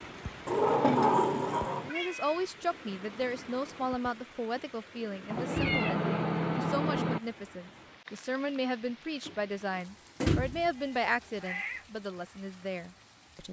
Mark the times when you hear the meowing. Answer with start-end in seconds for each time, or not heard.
1.9-2.5, 5.2-7.2, 10.8-11.8.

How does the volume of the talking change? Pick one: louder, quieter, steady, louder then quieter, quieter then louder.
steady.